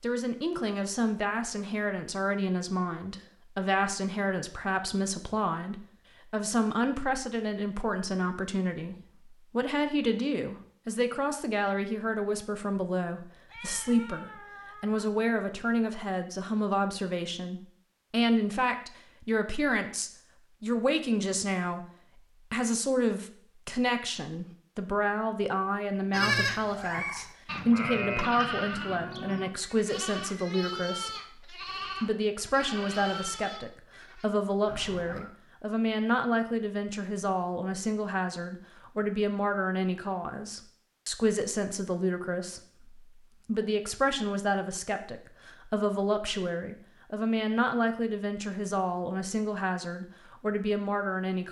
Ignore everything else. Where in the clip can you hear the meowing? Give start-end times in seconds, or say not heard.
13.5-15.1, 26.8-27.4, 34.6-35.4.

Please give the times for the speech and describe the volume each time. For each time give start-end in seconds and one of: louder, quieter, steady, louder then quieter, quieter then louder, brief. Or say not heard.
0.0-51.4 steady.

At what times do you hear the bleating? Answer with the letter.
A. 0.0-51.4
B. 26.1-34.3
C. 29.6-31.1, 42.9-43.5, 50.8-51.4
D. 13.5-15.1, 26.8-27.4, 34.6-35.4
B.